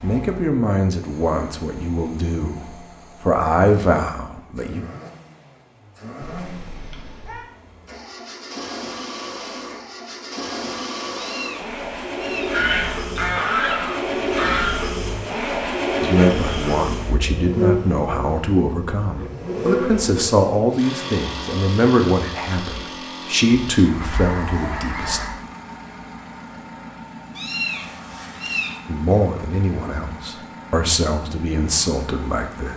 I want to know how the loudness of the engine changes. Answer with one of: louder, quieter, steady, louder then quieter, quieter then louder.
louder then quieter.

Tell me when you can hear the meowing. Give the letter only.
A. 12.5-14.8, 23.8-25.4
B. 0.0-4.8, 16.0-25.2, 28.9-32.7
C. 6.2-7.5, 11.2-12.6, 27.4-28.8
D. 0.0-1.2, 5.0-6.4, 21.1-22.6
C.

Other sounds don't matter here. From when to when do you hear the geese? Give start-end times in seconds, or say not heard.
12.5-14.8, 23.8-25.4.